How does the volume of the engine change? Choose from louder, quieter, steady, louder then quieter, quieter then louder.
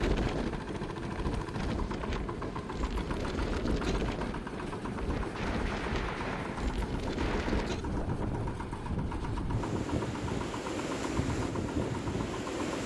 steady.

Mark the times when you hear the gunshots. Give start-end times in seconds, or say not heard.
5.1-7.8.